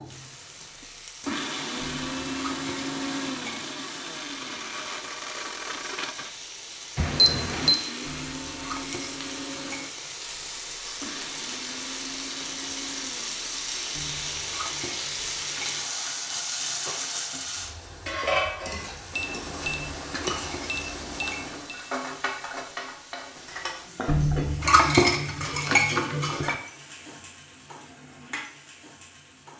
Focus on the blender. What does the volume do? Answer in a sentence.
The loudness of the blender goes down.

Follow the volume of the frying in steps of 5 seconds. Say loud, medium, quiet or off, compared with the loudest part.
quiet, medium, loud, loud, medium, medium.